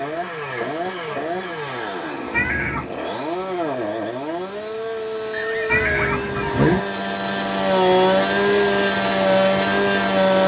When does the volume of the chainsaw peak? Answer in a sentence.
The loudest moment of the chainsaw is at 8 seconds.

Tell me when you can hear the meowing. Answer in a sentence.
The meowing can be heard from 2.3 to 3.0 s and from 5.7 to 6.8 s.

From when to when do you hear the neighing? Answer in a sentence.
The neighing can be heard from 5.3 to 6.9 s.